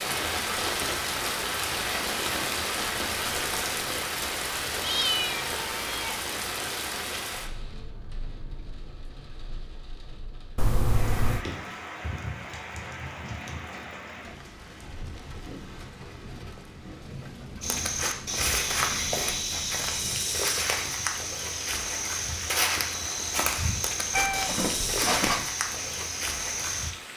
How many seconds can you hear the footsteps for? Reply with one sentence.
You can hear the footsteps for 9 seconds altogether.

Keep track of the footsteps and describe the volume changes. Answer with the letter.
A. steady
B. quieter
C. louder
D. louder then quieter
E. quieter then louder
A.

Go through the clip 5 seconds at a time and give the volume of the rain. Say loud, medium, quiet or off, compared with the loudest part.
loud, medium, medium, quiet, quiet, quiet.